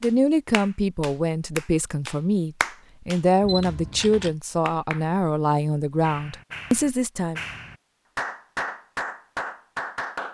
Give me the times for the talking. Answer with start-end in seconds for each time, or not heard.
0.0-7.4.